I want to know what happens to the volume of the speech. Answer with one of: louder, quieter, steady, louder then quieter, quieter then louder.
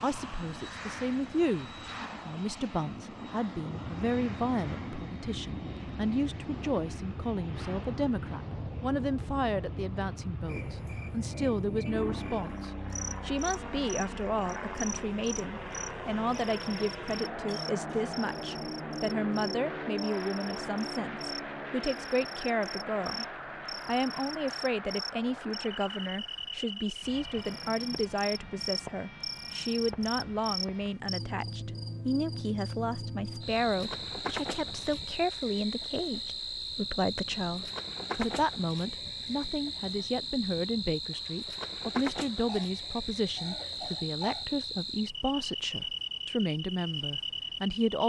steady.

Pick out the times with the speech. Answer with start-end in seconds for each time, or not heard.
0.0-23.2, 23.9-48.0.